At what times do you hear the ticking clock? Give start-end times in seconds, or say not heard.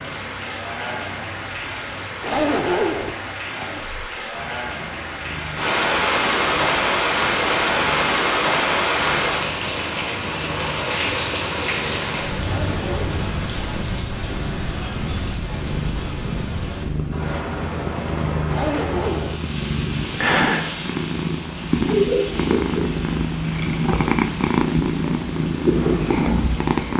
not heard.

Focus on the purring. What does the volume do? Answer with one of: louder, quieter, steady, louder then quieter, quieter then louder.
louder.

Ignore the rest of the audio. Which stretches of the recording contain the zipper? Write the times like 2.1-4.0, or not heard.
2.2-3.1, 12.4-13.2, 18.4-19.4.